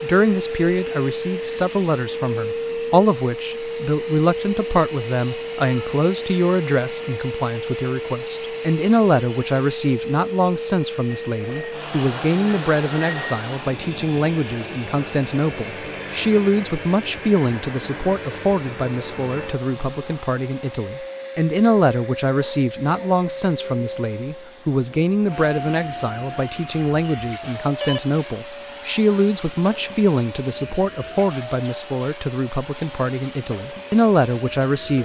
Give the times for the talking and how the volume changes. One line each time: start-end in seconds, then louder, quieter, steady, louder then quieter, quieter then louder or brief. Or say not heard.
0.0-34.9 steady.